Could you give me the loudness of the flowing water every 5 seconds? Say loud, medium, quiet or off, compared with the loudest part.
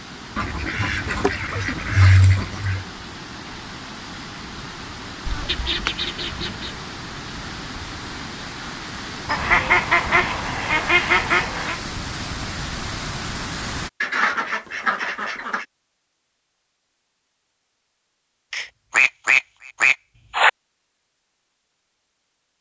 medium, loud, loud, off, off.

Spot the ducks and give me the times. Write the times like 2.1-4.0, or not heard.
0.3-2.9, 5.2-6.7, 9.2-11.8, 14.0-15.7, 18.5-20.5.